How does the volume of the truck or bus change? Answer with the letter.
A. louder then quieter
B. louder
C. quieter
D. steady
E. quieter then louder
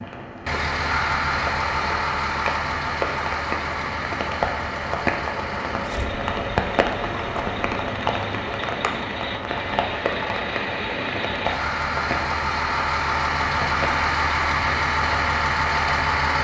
E.